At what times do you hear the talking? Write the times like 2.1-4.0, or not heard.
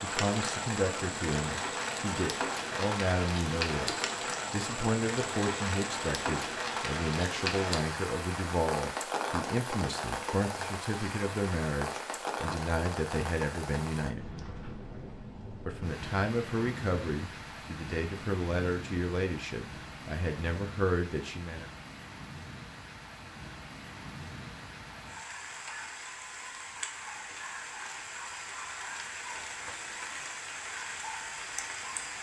0.0-14.2, 15.7-21.6.